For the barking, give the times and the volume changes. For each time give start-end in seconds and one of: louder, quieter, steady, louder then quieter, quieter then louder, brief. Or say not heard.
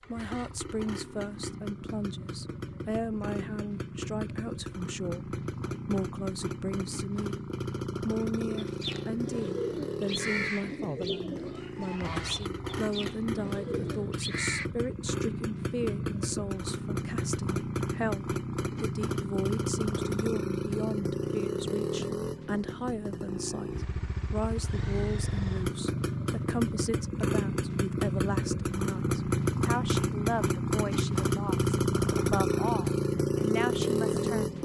not heard.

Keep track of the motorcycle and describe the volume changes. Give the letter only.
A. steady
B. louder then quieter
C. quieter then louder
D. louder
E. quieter
D.